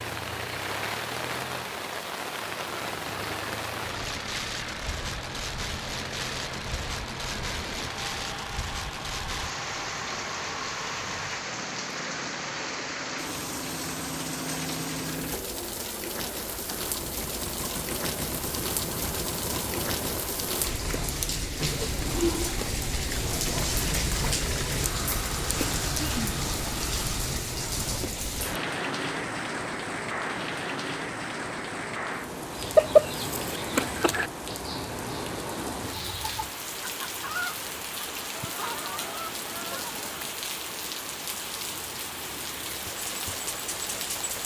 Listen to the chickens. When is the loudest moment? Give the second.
33 s.